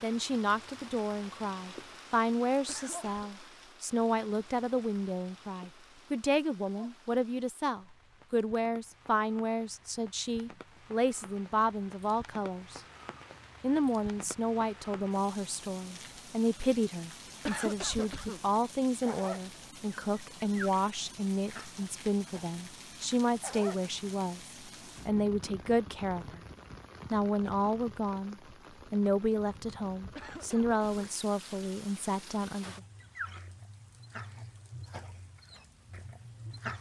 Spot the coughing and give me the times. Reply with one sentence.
You can hear the coughing from 2.6 to 3.3 s, from 17.4 to 18.4 s and from 30.1 to 31.1 s.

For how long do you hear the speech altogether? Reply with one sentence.
You can hear the speech for 31 seconds altogether.